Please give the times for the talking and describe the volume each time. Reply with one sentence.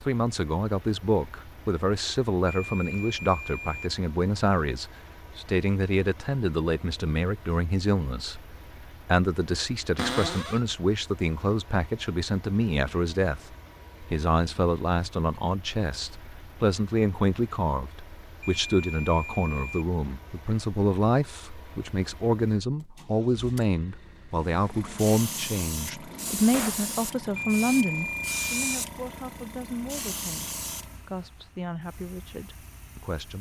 You can hear the talking from 0.0 to 33.3 s, at a steady volume.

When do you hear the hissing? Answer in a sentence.
You can hear the hissing from 24.6 to 30.9 s.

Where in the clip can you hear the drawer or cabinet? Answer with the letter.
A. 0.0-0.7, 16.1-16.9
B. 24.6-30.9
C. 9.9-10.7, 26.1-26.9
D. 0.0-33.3
C.